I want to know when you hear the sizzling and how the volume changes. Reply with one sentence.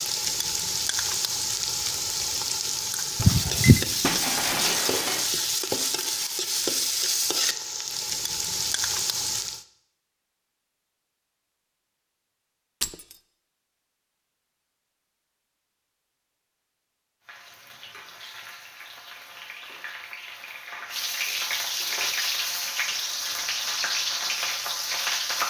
The sizzling can be heard from 0.0 to 9.7 s, at a steady volume; and from 17.2 to 25.4 s, getting louder.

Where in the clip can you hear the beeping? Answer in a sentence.
The beeping can be heard from 3.2 to 3.8 s.